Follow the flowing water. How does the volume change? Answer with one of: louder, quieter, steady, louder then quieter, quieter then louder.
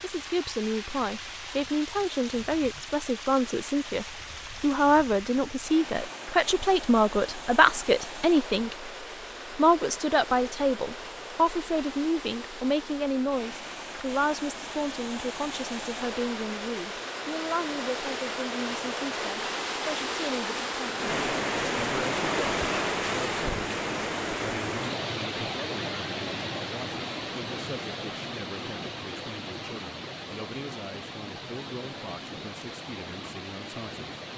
louder then quieter.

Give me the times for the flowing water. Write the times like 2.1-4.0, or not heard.
0.0-34.3.